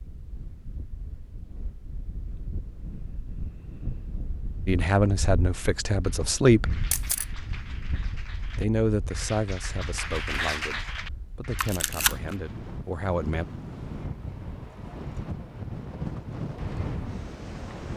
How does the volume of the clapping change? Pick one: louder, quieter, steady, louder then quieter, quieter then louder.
louder then quieter.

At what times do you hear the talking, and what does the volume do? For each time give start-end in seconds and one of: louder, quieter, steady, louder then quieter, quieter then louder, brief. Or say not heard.
4.7-6.8 brief
8.6-13.4 quieter then louder.